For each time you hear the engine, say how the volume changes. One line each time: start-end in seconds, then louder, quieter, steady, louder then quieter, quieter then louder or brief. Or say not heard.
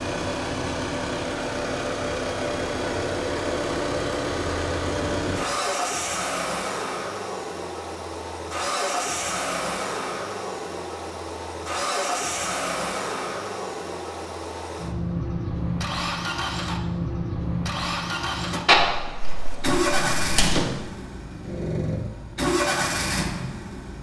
0.0-23.9 steady.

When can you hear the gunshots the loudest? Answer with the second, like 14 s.
19 s.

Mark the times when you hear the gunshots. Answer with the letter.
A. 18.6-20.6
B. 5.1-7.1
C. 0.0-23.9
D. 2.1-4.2
A.